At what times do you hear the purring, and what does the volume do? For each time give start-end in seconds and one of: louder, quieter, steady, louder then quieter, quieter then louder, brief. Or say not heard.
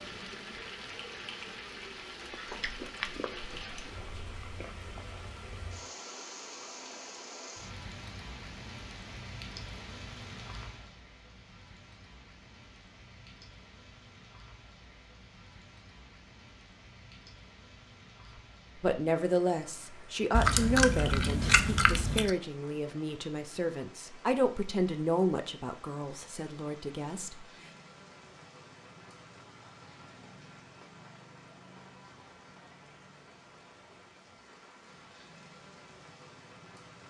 not heard.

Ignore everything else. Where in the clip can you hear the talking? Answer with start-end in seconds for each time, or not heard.
18.8-27.4.